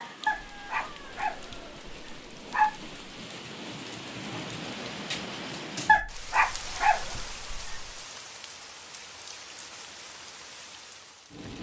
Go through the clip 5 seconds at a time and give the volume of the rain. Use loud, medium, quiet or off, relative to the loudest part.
loud, loud, medium.